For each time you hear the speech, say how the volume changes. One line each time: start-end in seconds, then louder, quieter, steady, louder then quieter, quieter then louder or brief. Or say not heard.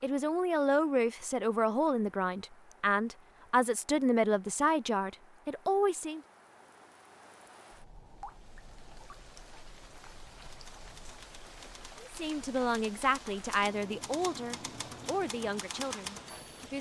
0.0-6.2 steady
12.0-16.7 quieter.